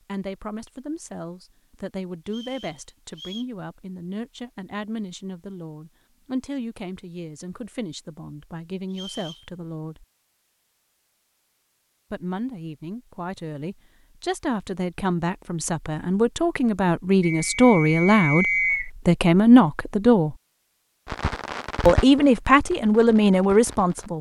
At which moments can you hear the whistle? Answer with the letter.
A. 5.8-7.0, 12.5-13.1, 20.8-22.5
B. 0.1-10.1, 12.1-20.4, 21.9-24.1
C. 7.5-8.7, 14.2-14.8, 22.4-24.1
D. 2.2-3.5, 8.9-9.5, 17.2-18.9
D.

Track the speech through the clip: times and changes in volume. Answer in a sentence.
You can hear the speech from 0.1 to 10.1 s, at a steady volume; from 12.1 to 20.4 s, getting louder; and briefly from 21.9 to 24.1 s.